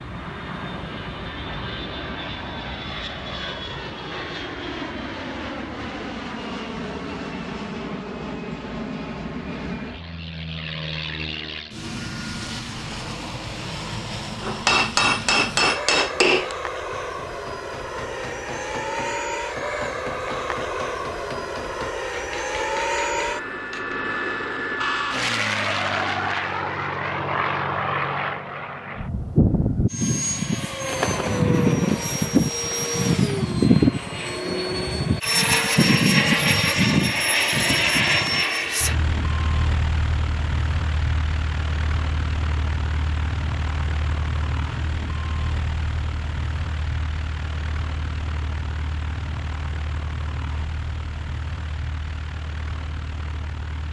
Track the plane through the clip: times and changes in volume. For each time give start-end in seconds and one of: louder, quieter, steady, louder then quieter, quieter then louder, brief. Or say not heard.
0.0-53.8 louder then quieter.